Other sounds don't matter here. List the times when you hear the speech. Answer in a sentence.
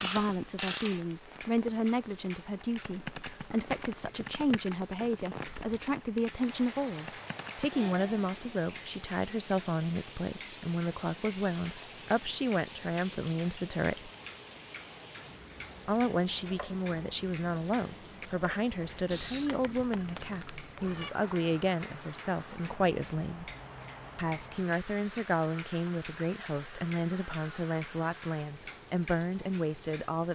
The speech can be heard from 0.0 to 14.1 s, from 15.8 to 23.5 s and from 24.1 to 30.3 s.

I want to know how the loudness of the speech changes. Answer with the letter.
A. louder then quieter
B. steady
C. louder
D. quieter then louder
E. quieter
B.